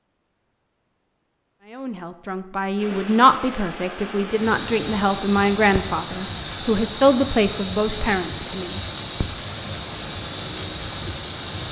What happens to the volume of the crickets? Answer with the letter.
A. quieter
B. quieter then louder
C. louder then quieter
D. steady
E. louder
D.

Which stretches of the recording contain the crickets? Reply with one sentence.
You can hear the crickets from 4.3 to 11.6 s.